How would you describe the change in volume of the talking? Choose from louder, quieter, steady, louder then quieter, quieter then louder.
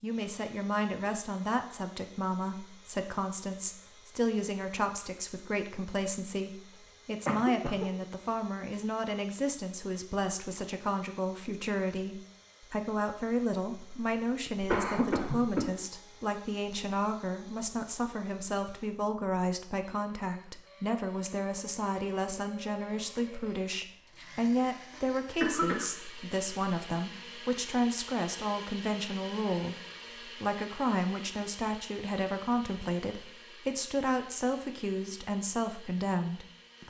steady.